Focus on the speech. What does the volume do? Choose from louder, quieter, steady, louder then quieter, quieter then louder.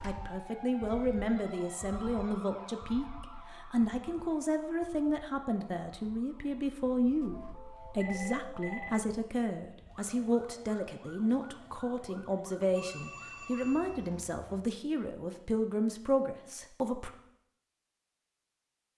steady.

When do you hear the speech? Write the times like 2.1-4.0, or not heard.
0.0-17.1.